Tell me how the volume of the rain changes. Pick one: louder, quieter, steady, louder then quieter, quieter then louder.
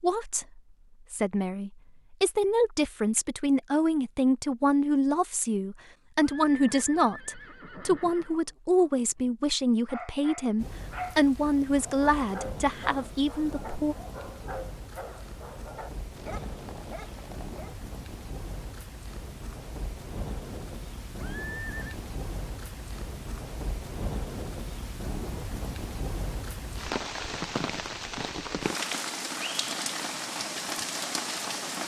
louder.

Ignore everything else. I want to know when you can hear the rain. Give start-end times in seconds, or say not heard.
10.6-31.8.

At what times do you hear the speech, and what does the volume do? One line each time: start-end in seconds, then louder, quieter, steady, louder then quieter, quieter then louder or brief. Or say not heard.
0.0-13.9 steady.